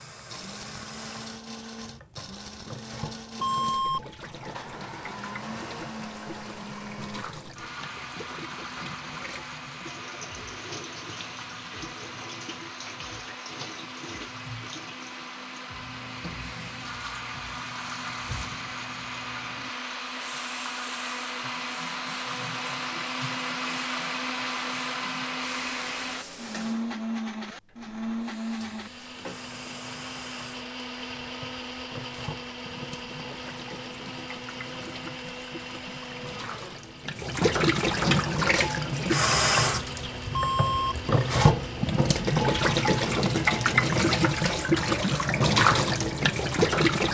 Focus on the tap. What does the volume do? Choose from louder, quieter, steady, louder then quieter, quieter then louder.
louder.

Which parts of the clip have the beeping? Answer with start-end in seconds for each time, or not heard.
3.4-4.0, 40.3-41.0.